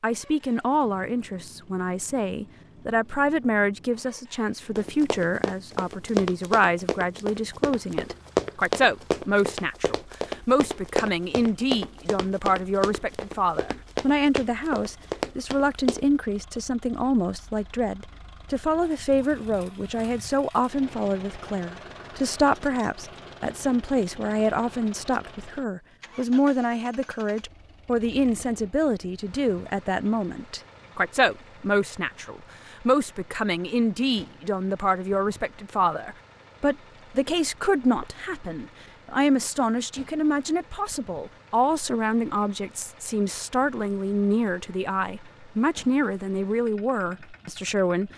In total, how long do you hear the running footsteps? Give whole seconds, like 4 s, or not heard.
11 s.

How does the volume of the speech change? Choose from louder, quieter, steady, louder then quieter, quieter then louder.
steady.